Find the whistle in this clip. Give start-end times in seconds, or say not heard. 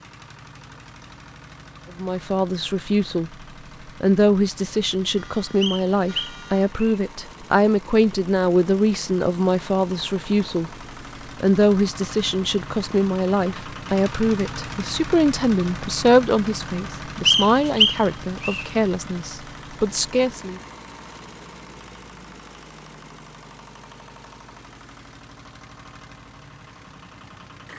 5.6-7.0, 17.2-18.6.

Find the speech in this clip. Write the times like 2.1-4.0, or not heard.
1.9-3.3, 4.0-10.7, 11.4-20.6.